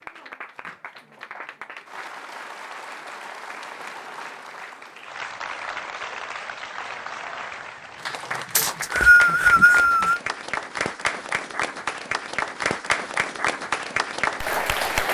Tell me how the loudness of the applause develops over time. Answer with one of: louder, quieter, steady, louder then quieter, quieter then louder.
louder.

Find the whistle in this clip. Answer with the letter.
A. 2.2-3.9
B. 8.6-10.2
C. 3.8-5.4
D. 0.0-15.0
B.